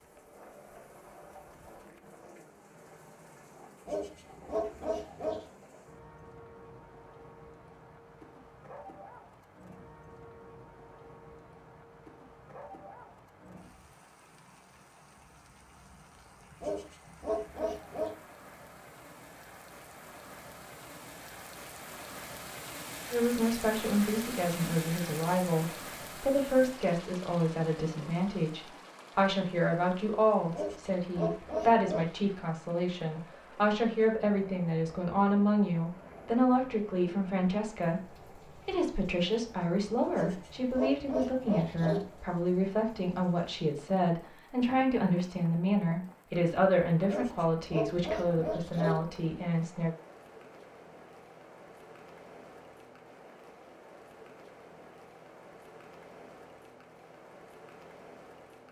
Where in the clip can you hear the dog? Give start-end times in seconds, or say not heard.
3.9-5.5, 16.6-18.1, 30.5-32.1, 40.1-42.0, 47.0-49.0.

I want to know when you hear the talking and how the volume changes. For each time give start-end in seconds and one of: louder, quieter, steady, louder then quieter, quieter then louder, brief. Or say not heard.
23.1-49.9 steady.